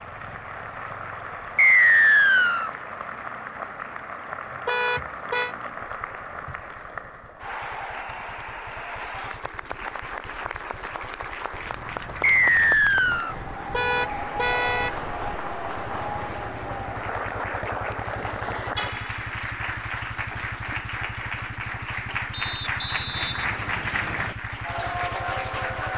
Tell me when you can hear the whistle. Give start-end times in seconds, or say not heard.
1.6-2.7, 12.2-13.3, 22.3-24.4.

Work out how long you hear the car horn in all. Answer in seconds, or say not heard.
3 s.